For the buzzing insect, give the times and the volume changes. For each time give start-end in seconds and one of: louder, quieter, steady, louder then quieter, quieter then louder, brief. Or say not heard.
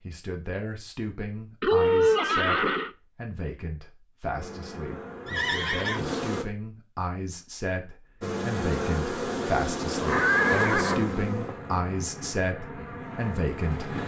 4.3-6.5 brief
8.2-14.0 quieter.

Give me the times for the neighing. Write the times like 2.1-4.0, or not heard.
1.6-2.9, 5.2-6.2, 9.9-11.5.